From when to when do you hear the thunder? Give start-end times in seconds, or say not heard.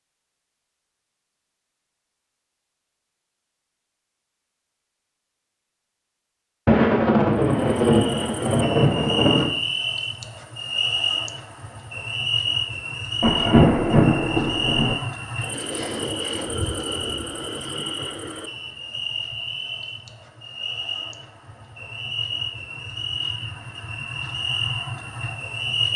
6.7-9.4, 13.2-14.9.